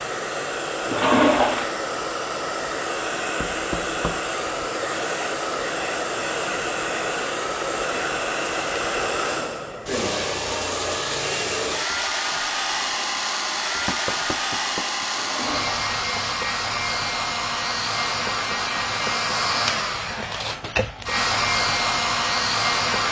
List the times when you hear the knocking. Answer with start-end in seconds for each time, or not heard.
3.4-4.2, 13.8-15.1.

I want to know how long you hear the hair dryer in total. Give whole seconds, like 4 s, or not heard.
23 s.